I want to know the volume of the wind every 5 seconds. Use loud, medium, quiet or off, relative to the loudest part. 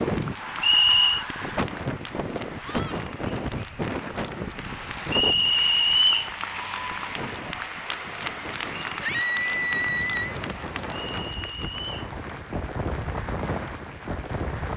loud, medium, loud.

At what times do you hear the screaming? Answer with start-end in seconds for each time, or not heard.
2.6-3.0, 9.0-10.3.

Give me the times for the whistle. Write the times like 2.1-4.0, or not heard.
0.6-1.2, 5.1-6.3, 11.1-12.1.